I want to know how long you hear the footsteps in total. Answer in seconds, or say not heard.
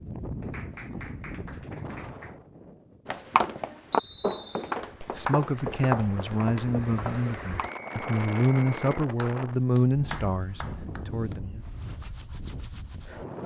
5 s.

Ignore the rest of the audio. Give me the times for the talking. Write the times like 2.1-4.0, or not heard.
5.2-11.6.